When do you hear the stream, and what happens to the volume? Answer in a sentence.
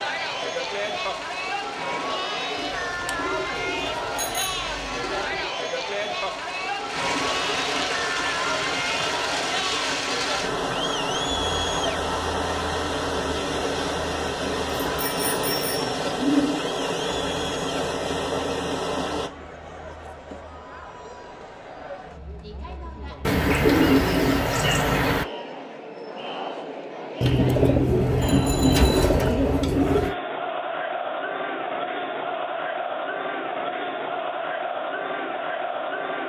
You can hear the stream from 0.0 to 19.3 s, getting louder.